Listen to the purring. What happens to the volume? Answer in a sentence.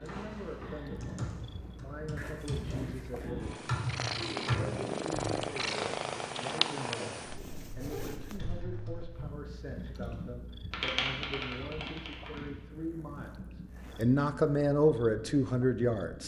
The loudness of the purring goes up, then down.